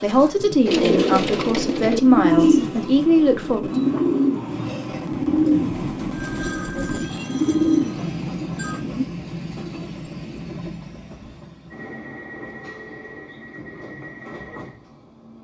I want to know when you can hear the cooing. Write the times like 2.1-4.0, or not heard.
0.7-9.1.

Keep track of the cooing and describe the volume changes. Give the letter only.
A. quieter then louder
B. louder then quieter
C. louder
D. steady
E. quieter
A.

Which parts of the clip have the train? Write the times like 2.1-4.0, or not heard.
0.0-15.3.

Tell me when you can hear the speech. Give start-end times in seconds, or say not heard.
0.0-3.7.